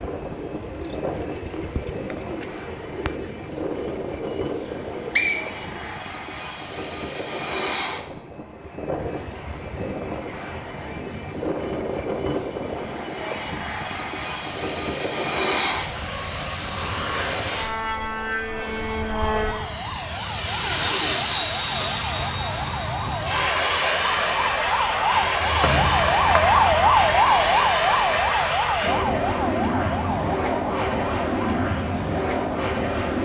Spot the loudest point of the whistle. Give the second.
5 s.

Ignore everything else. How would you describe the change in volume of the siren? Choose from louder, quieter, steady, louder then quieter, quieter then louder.
louder then quieter.